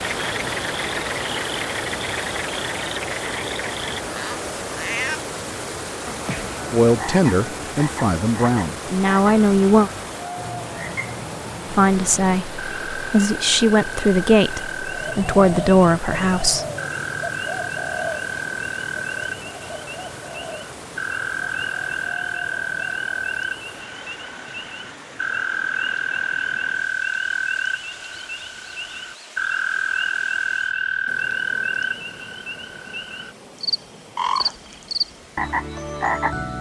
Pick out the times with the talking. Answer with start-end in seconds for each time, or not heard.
6.7-9.9, 11.7-16.6.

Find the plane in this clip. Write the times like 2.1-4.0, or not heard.
not heard.